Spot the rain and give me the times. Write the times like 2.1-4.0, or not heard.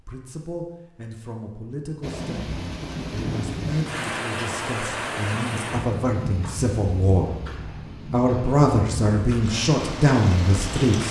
2.0-11.0.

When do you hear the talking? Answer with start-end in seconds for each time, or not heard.
0.0-7.3, 8.1-11.0.